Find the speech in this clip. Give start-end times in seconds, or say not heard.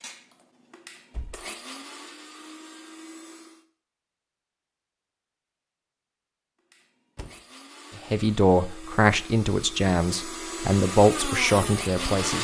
8.1-12.3.